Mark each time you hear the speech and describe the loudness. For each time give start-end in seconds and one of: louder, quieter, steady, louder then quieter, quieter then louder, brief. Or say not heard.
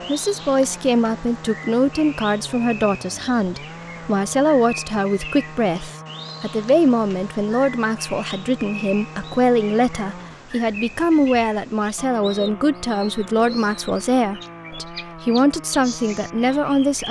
0.1-17.0 steady.